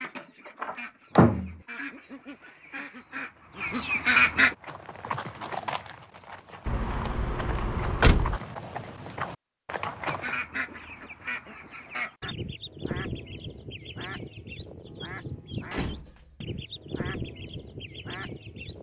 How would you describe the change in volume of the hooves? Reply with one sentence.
The volume of the hooves goes down, then up.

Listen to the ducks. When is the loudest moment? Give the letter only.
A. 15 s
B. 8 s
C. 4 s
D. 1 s
C.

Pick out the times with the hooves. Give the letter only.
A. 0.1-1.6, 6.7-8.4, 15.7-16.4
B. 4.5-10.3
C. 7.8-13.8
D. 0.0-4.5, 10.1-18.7
B.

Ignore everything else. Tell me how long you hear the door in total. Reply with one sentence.
You can hear the door for 4 seconds altogether.